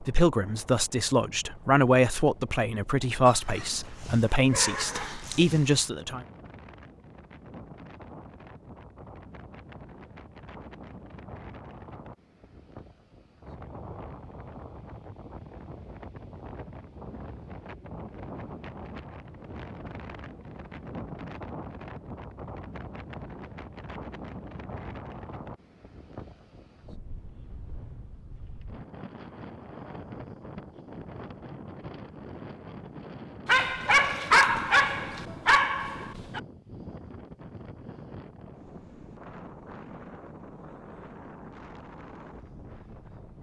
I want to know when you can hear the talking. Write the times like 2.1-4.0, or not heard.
0.0-6.2.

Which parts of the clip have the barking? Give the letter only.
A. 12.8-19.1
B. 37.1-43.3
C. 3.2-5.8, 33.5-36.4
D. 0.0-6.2
C.